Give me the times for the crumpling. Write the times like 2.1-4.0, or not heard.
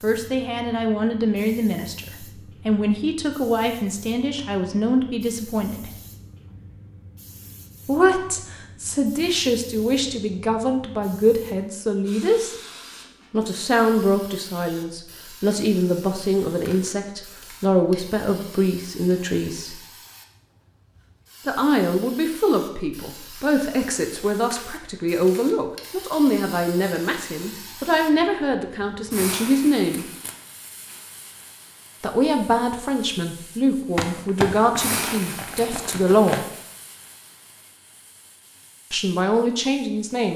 34.0-36.5.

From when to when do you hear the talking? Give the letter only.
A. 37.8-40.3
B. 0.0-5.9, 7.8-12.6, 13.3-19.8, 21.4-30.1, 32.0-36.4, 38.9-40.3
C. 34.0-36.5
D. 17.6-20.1
B.